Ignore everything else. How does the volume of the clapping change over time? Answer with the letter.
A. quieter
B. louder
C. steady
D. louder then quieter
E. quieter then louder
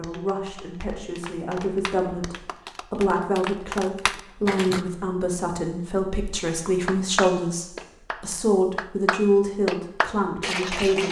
B.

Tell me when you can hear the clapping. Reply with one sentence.
You can hear the clapping from 0.0 to 4.8 s and from 6.3 to 11.0 s.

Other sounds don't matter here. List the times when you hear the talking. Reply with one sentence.
The talking can be heard from 0.0 to 11.0 s.